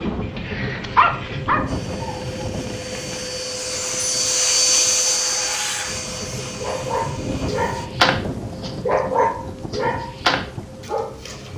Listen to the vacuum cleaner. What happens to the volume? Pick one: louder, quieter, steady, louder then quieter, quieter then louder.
louder then quieter.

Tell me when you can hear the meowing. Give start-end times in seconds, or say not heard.
not heard.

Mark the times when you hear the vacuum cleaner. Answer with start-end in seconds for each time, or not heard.
1.6-7.9.